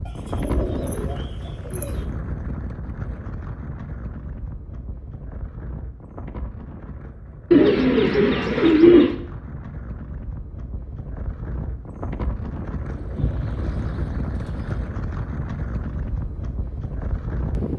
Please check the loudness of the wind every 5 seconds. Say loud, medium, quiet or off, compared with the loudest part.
loud, medium, loud, loud.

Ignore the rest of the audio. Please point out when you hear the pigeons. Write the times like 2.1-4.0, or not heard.
0.1-2.0, 7.5-9.1, 12.9-14.8.